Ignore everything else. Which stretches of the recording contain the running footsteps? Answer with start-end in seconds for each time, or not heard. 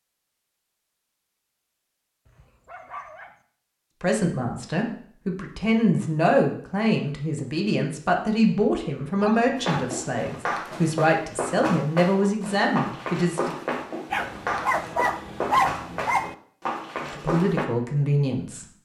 9.6-17.6.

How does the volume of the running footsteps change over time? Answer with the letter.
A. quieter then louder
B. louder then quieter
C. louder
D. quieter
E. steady
E.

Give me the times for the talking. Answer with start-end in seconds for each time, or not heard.
4.0-13.6, 17.0-18.6.